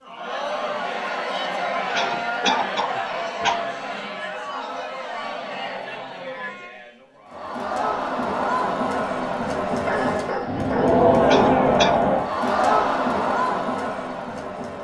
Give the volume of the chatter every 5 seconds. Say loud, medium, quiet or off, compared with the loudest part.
medium, medium, loud.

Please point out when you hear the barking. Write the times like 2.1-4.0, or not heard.
9.8-11.1.